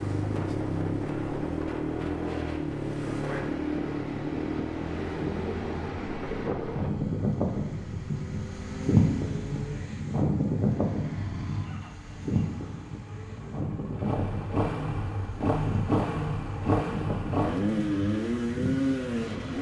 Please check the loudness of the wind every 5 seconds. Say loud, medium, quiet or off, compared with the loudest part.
medium, loud, loud, medium.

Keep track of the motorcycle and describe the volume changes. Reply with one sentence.
The volume of the motorcycle goes down, then up.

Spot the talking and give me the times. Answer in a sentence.
The talking can't be heard in this clip.